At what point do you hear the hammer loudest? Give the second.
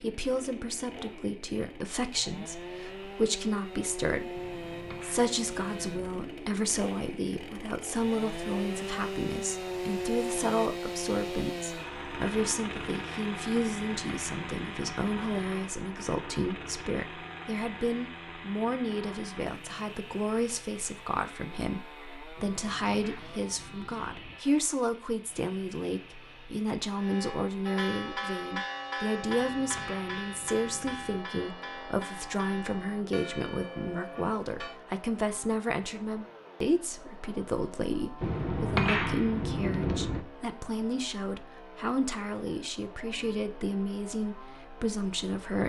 39 s.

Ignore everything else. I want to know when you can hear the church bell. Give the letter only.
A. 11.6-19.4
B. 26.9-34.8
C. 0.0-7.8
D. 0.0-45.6
B.